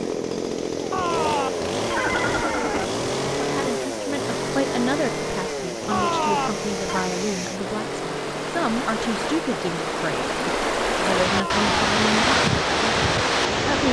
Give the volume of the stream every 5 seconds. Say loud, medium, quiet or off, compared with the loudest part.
quiet, medium, loud.